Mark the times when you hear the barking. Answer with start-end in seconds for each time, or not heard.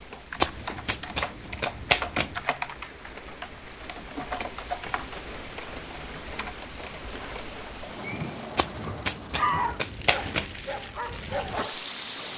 8.0-12.3.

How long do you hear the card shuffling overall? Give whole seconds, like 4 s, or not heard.
5 s.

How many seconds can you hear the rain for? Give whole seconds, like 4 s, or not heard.
12 s.